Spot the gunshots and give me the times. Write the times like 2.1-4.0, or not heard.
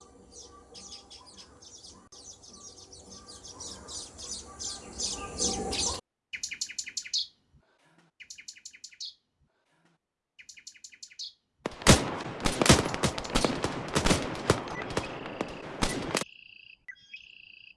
11.7-16.2.